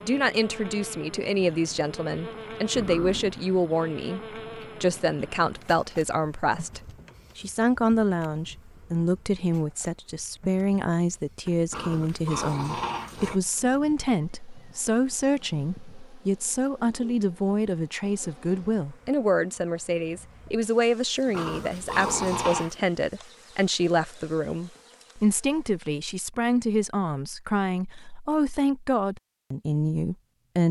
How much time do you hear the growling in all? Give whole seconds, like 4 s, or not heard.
4 s.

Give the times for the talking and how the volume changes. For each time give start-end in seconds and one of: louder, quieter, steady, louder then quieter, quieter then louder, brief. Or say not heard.
0.0-30.6 steady.